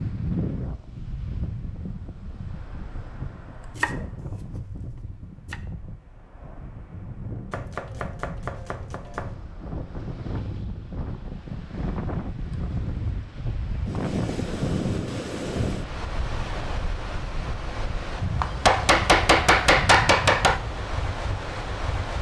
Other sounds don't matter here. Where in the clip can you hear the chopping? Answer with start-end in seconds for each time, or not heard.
3.8-4.5, 7.5-9.3, 18.4-20.6.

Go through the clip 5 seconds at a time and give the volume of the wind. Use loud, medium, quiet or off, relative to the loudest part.
loud, medium, loud, loud, loud.